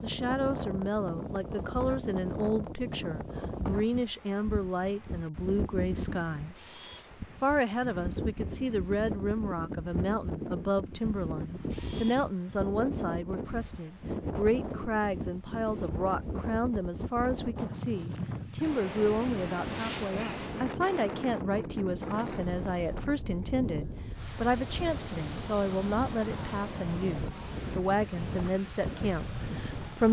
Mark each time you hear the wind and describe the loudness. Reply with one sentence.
You can hear the wind from 0.0 to 30.0 s, at a steady volume.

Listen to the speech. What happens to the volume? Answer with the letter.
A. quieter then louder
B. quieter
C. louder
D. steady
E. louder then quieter
D.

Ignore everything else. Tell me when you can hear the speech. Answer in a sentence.
You can hear the speech from 0.0 to 6.5 s and from 7.4 to 30.0 s.